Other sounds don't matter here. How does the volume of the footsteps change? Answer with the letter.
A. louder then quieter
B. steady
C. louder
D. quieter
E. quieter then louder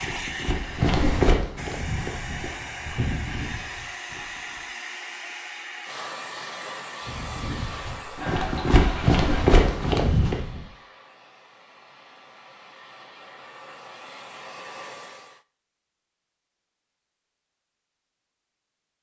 E.